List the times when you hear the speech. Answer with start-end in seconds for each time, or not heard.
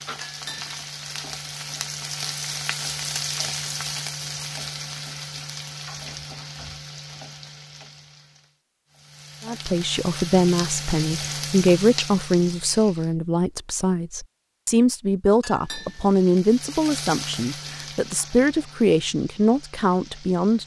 9.4-20.6.